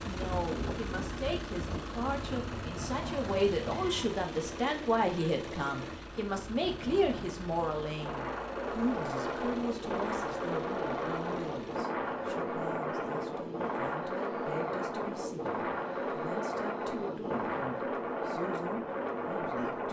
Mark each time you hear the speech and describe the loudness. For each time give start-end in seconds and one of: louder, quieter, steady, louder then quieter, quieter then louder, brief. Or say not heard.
0.0-19.8 quieter.